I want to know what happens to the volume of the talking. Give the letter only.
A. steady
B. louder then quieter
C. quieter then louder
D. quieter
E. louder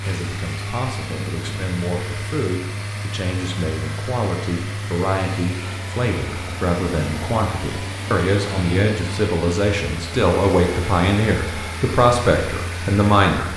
E.